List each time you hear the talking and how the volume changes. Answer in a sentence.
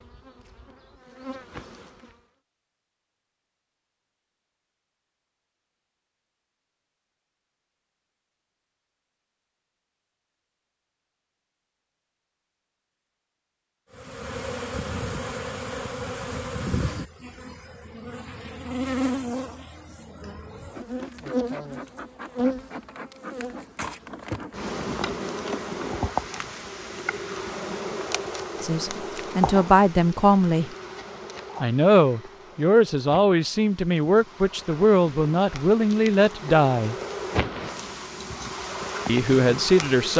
You can hear the talking briefly from 28.6 to 30.7 s; from 31.6 to 37.0 s, at a steady volume; and briefly from 39.0 to 40.1 s.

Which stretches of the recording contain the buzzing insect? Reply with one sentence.
The buzzing insect can be heard from 0.0 to 2.3 s and from 13.9 to 40.1 s.